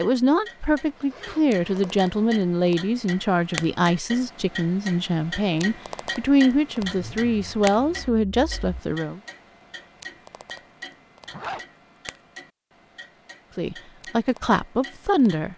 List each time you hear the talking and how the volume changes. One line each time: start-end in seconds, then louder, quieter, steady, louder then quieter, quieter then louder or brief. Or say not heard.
0.0-9.2 steady
13.6-15.5 brief.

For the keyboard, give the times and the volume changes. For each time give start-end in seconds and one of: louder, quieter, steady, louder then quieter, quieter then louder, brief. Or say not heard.
not heard.